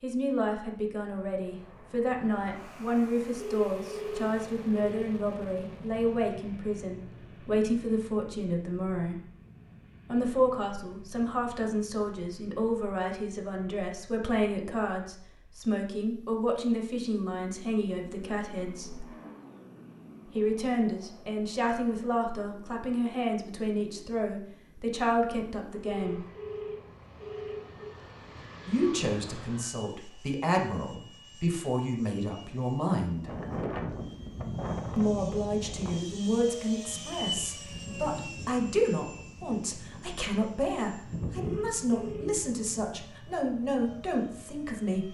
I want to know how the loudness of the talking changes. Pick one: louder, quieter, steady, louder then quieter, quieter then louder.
steady.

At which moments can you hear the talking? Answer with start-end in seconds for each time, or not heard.
0.0-9.2, 10.1-19.1, 20.2-26.2, 28.6-33.3, 35.0-45.0.